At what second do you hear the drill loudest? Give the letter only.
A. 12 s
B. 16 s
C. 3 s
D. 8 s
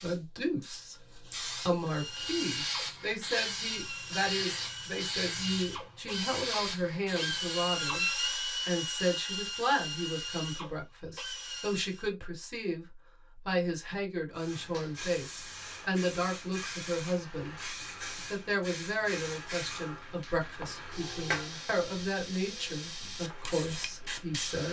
D.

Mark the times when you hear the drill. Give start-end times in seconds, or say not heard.
1.7-12.1.